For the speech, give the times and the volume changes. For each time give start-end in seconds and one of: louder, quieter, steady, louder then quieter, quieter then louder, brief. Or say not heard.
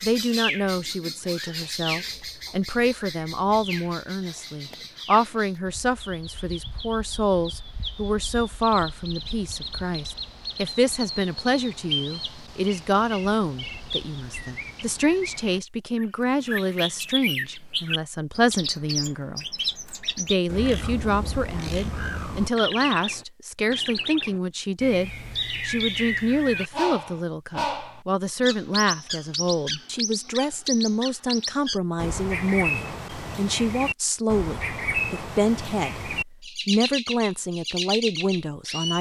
0.0-38.9 steady.